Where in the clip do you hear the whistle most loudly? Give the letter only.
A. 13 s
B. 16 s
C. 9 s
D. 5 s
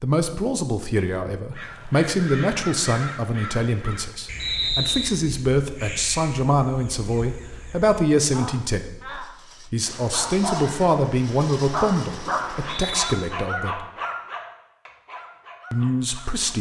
D.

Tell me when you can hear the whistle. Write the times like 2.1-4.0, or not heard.
4.4-5.2, 12.4-13.2.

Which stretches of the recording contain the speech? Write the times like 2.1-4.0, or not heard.
0.0-13.8, 15.7-16.5.